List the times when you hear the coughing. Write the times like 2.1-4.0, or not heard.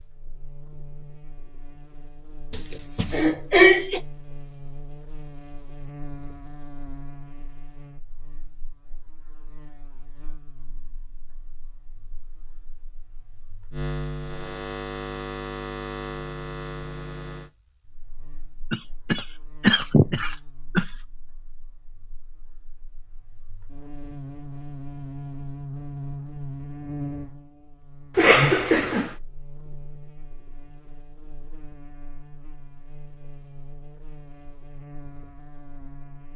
2.5-4.0, 18.7-20.9, 28.1-29.1.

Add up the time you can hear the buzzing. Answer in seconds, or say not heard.
36 s.